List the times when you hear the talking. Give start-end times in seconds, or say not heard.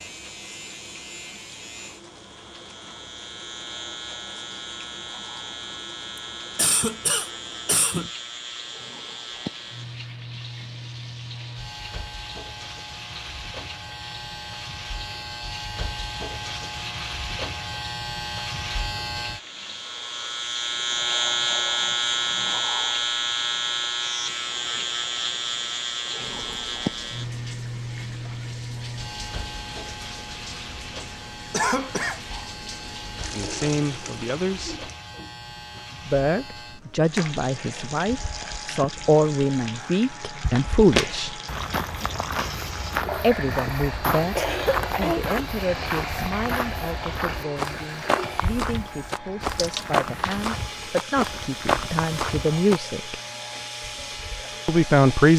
33.3-34.9, 36.0-41.4, 43.2-53.1, 54.6-55.3.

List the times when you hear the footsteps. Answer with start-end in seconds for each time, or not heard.
41.0-52.8.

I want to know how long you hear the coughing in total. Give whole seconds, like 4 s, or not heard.
3 s.